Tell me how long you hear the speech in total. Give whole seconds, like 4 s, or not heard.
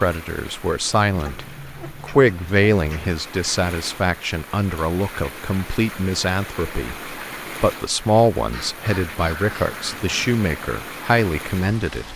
12 s.